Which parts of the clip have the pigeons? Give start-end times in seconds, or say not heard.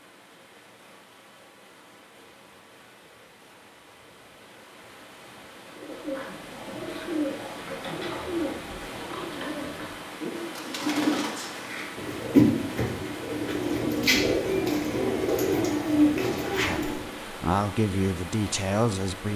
5.8-17.1.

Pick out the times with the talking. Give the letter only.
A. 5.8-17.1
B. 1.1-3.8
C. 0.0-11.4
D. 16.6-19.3
D.